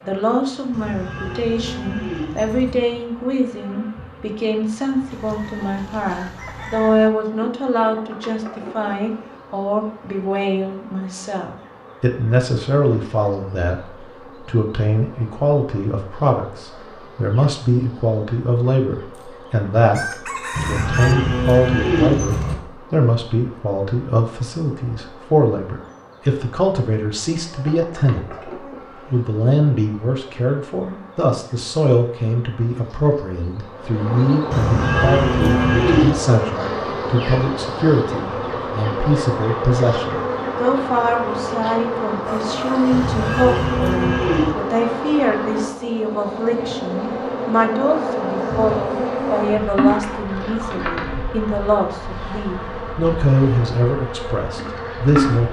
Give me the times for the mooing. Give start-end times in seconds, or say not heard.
0.7-2.8, 20.6-22.6, 34.5-36.2, 42.9-44.5.